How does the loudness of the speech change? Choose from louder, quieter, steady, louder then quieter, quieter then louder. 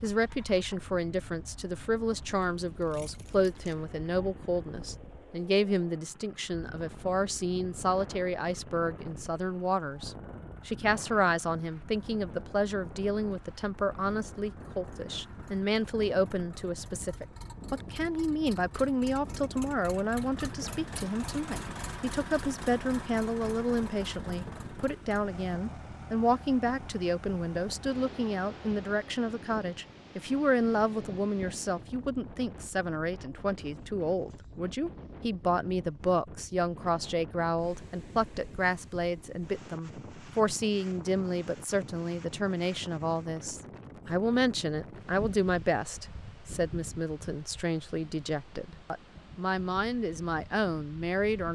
steady.